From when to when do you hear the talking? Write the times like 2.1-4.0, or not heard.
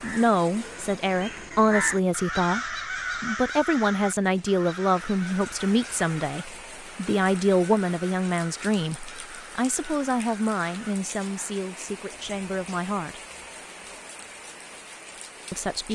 0.0-13.2, 15.5-15.9.